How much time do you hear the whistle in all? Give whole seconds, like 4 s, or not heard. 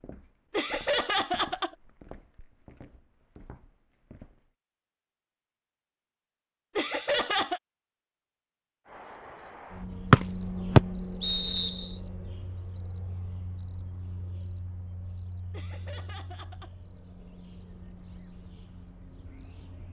2 s.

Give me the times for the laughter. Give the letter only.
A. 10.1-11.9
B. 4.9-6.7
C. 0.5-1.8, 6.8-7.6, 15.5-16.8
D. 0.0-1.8
C.